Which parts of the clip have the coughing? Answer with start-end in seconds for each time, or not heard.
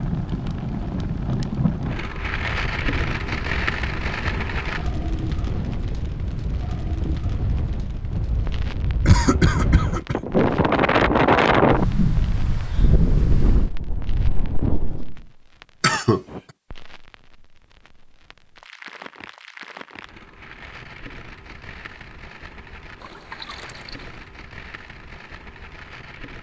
9.1-10.2, 15.8-16.2.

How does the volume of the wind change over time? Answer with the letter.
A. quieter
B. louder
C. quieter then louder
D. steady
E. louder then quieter
E.